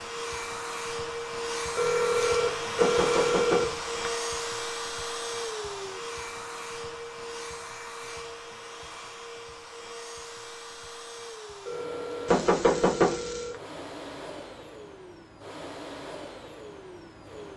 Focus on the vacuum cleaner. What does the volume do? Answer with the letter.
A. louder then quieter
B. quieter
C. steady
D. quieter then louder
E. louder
B.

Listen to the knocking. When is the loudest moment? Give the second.
13 s.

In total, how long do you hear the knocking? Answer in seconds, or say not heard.
3 s.